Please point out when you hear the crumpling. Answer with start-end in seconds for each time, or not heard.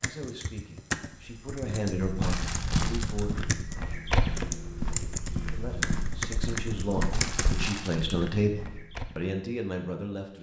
2.2-3.4, 7.1-8.2.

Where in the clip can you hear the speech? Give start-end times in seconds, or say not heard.
0.0-3.4, 5.5-10.3.